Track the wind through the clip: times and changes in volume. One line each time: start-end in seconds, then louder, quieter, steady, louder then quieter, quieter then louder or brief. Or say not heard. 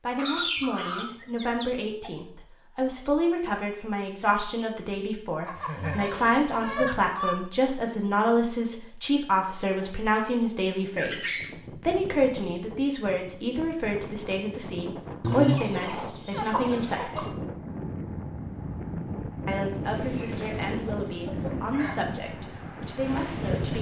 10.8-23.7 louder.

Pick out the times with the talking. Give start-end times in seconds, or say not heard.
0.0-17.4, 19.4-23.7.